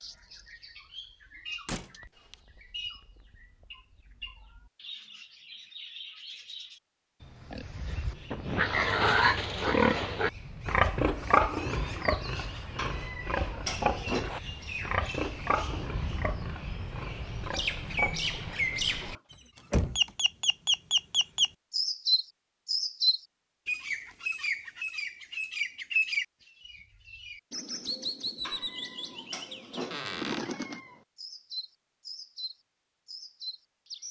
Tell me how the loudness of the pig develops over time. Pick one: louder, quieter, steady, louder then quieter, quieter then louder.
quieter.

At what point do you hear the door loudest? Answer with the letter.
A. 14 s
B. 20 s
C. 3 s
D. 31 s
B.